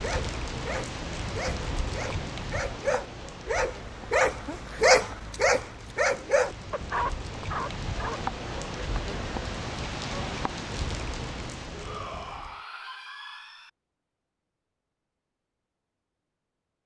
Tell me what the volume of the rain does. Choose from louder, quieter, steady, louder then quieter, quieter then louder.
quieter then louder.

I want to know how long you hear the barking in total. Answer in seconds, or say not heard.
9 s.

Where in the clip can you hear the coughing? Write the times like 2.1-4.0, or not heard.
not heard.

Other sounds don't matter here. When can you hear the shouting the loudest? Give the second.
12 s.